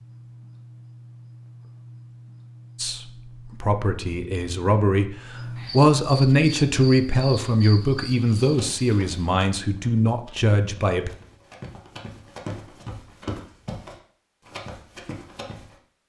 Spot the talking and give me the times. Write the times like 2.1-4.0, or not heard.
2.8-11.1.